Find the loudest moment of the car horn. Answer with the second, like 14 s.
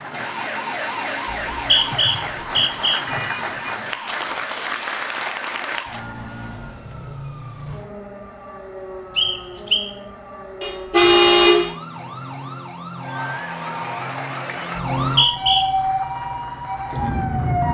11 s.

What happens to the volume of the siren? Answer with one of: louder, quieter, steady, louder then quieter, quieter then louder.
quieter then louder.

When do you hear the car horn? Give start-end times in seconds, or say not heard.
3.0-3.8, 10.6-11.7.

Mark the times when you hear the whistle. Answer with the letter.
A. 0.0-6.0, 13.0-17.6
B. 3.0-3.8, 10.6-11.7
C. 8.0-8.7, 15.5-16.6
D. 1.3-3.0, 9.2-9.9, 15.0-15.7
D.